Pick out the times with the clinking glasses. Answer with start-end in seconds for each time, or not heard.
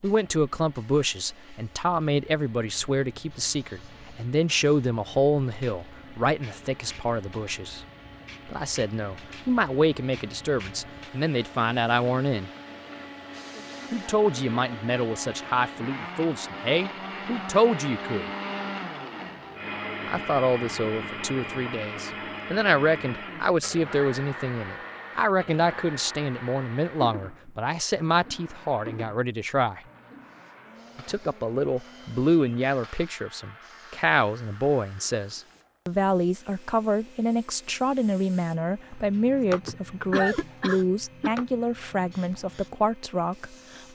not heard.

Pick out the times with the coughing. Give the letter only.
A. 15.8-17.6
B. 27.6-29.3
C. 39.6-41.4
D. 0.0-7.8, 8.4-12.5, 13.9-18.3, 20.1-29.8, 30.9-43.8
C.